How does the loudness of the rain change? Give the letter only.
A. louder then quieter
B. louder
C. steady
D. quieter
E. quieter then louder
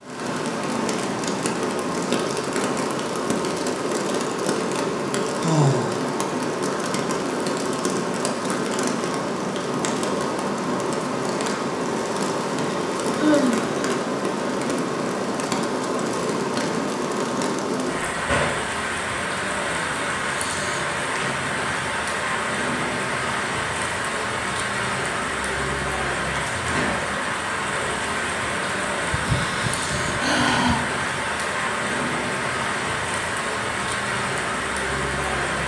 C.